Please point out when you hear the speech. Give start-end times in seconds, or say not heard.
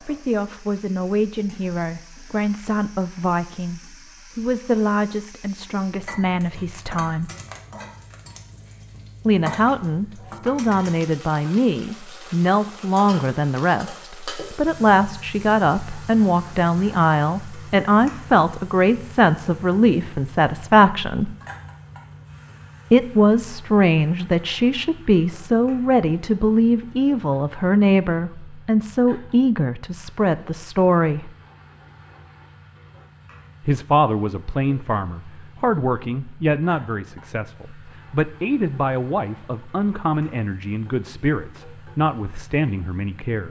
0.1-7.3, 9.2-21.3, 22.9-31.3, 33.6-43.4.